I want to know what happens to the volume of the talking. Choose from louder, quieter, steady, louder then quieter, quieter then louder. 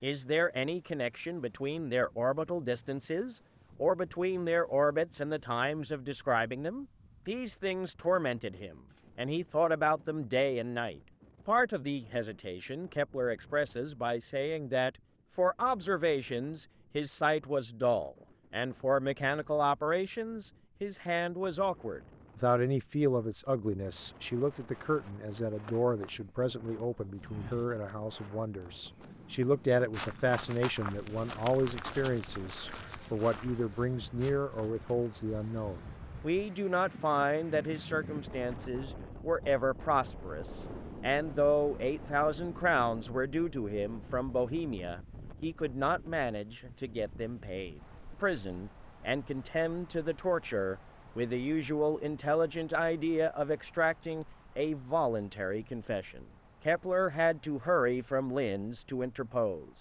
steady.